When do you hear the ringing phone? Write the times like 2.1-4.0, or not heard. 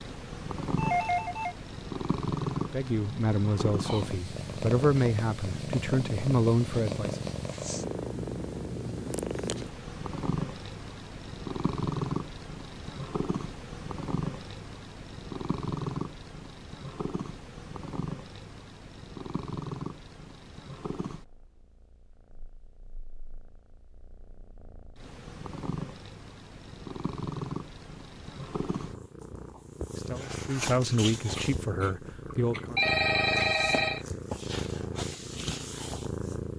0.8-1.6, 31.4-34.0.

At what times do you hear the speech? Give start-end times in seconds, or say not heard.
2.6-7.2, 29.9-32.8.